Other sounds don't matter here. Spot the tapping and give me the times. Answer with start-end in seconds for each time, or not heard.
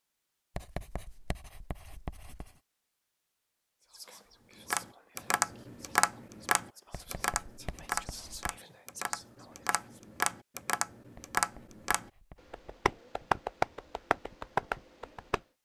4.5-15.4.